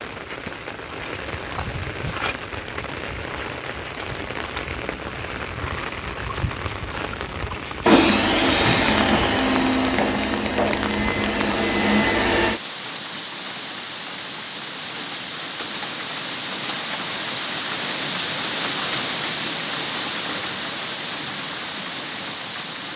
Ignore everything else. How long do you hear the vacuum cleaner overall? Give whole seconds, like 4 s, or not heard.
5 s.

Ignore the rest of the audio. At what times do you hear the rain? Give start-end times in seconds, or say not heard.
0.0-22.9.